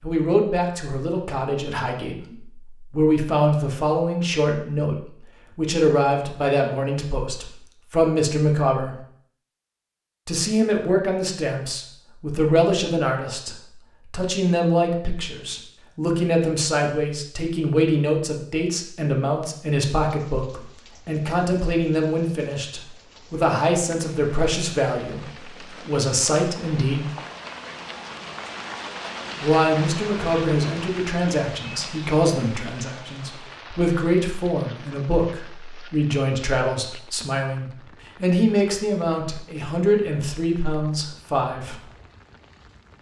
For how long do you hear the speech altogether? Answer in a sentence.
You can hear the speech for 38 seconds altogether.